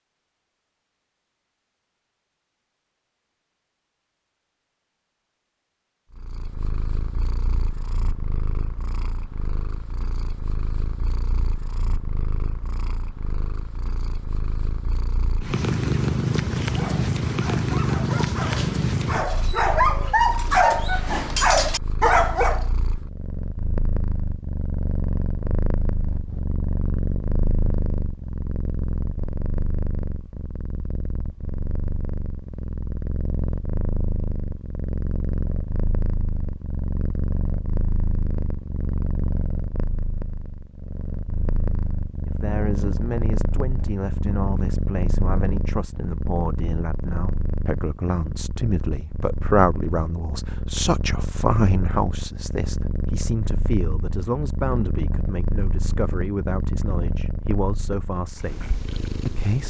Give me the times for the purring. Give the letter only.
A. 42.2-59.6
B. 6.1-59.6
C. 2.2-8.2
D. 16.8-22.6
B.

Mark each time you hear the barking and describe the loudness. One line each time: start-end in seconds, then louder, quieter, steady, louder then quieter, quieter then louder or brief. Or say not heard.
16.8-22.6 louder.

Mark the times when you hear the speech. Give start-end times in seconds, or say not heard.
42.2-59.6.